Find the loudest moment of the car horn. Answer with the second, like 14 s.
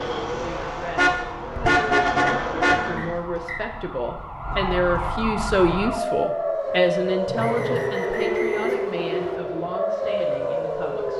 2 s.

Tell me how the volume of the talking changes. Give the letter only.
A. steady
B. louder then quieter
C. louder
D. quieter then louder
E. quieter
B.